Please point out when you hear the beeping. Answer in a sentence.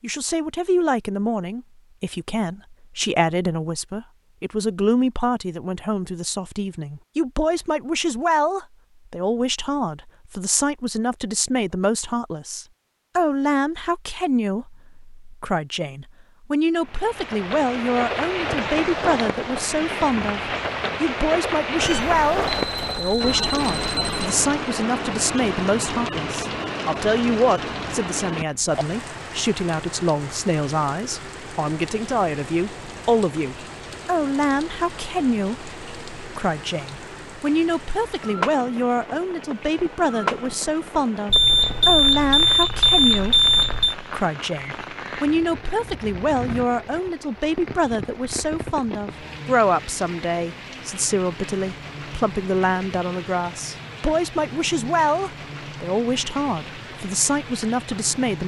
You can hear the beeping from 21.8 to 24.2 s and from 41.2 to 44.0 s.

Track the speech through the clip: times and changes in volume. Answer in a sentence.
You can hear the speech from 0.0 to 58.4 s, at a steady volume.